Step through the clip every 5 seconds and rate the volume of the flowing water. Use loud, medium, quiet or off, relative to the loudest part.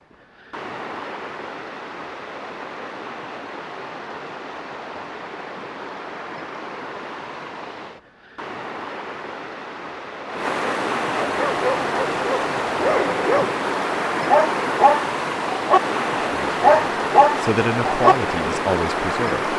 medium, medium, loud, loud.